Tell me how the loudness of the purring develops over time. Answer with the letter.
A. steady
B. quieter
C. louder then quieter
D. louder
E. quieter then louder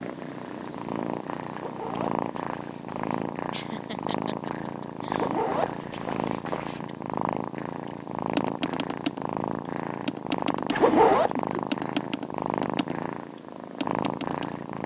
A.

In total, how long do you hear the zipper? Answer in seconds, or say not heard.
4 s.